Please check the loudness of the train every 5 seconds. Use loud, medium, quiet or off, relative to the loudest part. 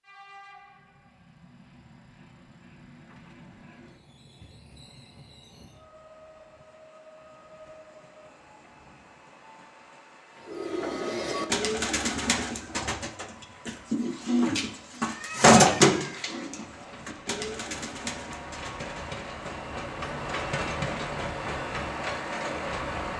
quiet, quiet, quiet, medium, loud.